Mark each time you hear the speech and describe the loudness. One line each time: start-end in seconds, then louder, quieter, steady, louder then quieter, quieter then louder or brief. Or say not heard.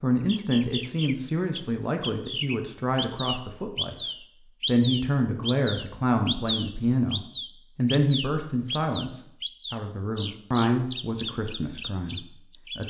0.0-12.8 steady.